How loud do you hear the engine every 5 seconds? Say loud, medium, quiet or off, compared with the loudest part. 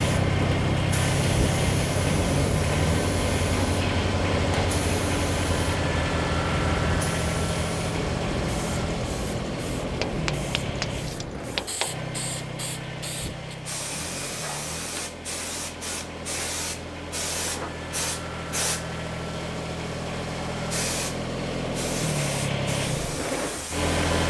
loud, loud, medium, medium, loud.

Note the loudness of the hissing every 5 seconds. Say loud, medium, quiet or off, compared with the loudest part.
loud, loud, medium, loud, medium.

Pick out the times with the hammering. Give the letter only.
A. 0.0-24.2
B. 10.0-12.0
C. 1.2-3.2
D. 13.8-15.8
B.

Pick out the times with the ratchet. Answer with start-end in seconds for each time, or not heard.
not heard.